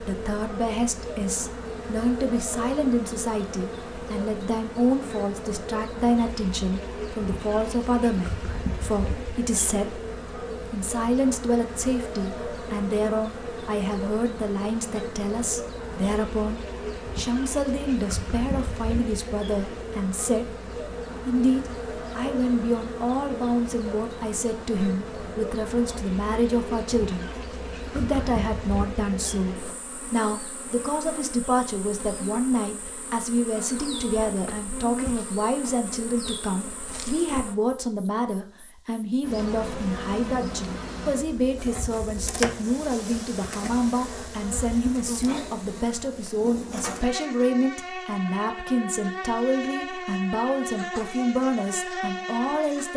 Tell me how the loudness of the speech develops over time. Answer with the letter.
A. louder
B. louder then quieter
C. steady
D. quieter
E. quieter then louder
C.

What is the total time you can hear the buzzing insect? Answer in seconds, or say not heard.
53 s.